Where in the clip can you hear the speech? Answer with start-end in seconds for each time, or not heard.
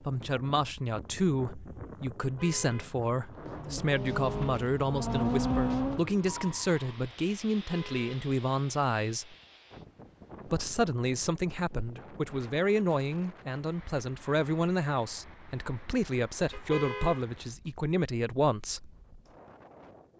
0.1-9.3, 10.4-18.9.